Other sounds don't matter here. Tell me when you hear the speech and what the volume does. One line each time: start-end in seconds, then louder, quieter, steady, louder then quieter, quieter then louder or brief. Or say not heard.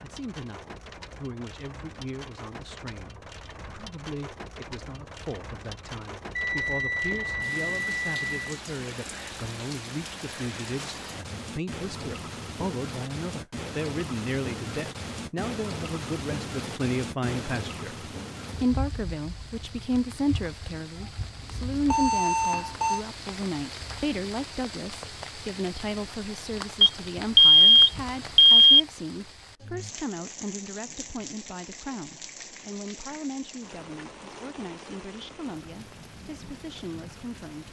0.0-37.6 louder then quieter.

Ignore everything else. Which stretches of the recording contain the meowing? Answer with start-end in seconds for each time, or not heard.
not heard.